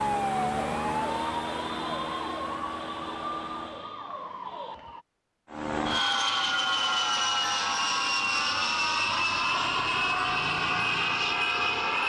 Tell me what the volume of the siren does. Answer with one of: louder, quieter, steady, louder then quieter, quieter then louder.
quieter.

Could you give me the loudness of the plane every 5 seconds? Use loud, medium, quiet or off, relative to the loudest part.
medium, loud, loud.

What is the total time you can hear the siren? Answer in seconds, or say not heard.
5 s.